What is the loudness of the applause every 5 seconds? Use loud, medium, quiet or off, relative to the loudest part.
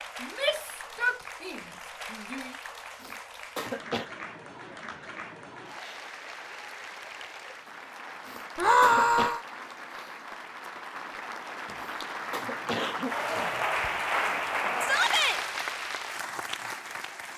medium, medium, loud, loud.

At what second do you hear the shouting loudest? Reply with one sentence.
The volume of the shouting peaks at 9 seconds.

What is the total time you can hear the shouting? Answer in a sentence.
The shouting can be heard for 4 seconds in total.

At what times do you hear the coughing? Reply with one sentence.
You can hear the coughing from 3.0 to 4.1 s, from 8.2 to 9.3 s and from 11.8 to 13.7 s.